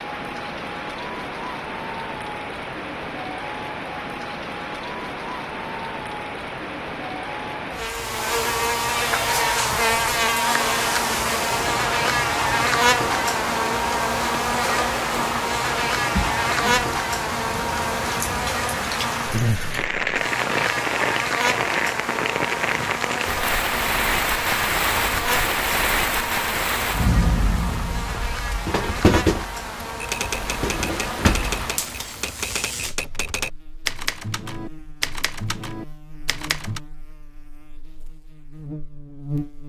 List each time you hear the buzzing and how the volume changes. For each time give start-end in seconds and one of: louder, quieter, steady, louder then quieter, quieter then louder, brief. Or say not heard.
7.8-39.6 quieter.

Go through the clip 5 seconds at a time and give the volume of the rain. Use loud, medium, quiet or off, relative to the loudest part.
medium, medium, medium, medium, loud, loud, medium, off.